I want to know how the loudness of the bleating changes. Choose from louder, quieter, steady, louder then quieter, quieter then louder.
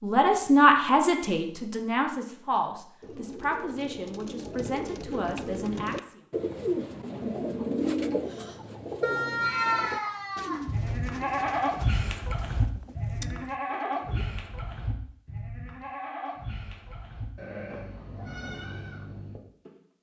quieter.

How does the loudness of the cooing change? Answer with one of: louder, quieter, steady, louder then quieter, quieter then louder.
louder then quieter.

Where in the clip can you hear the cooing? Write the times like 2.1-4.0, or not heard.
3.0-14.3.